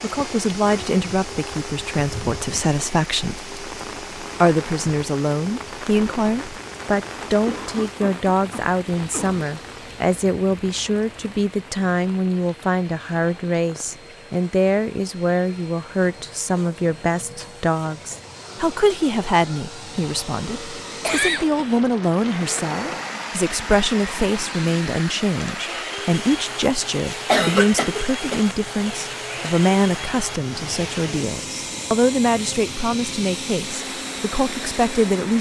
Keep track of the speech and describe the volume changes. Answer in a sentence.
The volume of the speech stays about the same.